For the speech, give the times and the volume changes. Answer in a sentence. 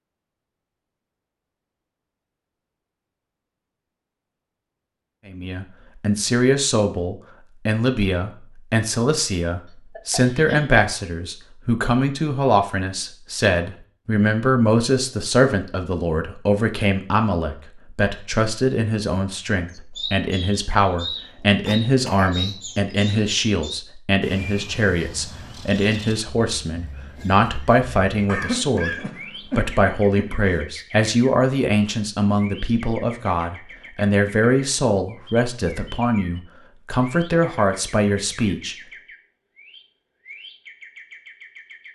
The speech can be heard from 5.2 to 38.8 s, at a steady volume.